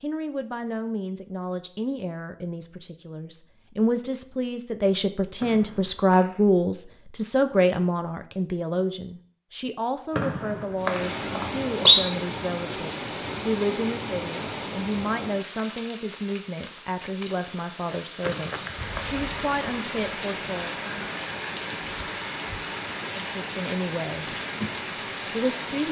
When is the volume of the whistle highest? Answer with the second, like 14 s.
12 s.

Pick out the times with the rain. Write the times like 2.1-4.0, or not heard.
10.8-25.8.